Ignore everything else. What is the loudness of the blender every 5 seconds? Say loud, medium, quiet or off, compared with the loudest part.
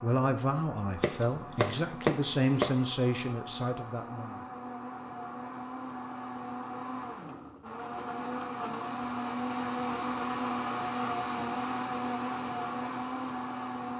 medium, loud, loud.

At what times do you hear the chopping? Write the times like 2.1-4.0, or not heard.
1.0-2.9.